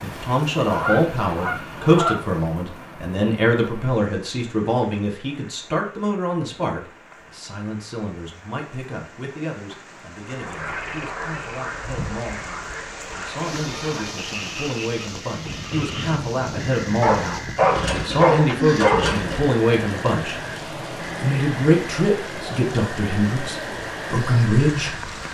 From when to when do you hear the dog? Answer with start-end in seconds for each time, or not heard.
17.0-19.4.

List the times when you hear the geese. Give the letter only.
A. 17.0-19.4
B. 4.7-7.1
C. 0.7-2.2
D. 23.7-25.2
C.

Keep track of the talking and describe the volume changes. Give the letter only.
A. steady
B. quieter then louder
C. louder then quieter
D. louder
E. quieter
B.